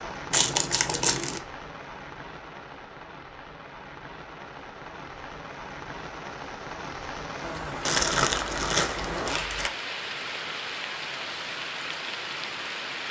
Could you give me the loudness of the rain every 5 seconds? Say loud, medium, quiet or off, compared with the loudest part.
medium, loud, loud.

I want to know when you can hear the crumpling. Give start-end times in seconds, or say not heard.
0.3-1.4, 7.8-9.7.